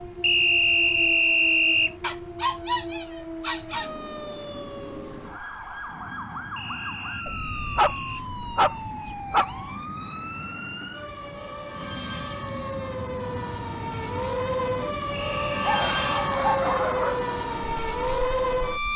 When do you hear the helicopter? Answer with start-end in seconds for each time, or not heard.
not heard.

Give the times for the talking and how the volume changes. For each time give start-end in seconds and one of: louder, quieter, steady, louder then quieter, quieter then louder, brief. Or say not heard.
not heard.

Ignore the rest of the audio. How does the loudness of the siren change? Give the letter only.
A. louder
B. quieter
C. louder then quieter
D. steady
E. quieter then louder
A.